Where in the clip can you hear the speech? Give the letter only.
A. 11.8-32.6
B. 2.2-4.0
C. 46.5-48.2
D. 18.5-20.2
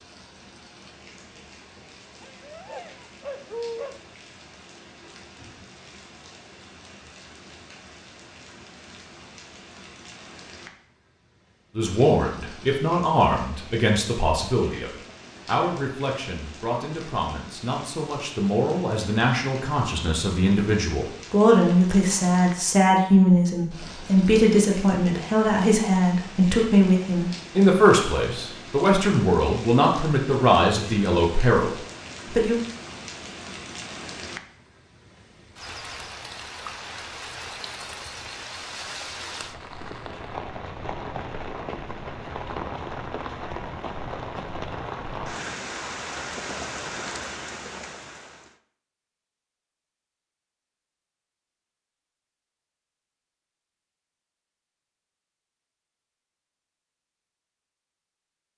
A.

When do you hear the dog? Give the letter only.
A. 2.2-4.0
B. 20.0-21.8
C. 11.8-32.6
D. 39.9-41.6
A.